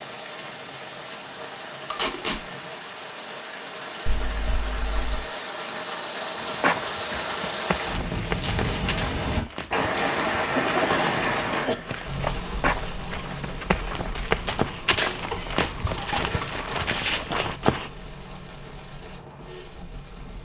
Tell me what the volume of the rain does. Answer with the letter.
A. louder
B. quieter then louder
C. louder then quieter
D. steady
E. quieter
C.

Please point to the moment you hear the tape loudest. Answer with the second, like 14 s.
2 s.